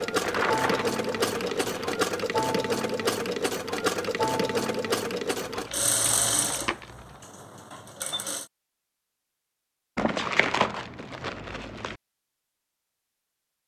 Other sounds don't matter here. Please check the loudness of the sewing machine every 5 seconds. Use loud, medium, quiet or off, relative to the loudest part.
loud, medium, off.